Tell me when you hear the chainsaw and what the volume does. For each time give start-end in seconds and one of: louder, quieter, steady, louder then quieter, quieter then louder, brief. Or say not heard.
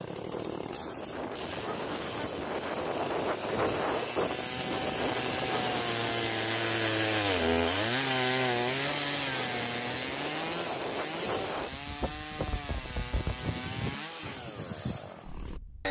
0.0-15.8 louder then quieter.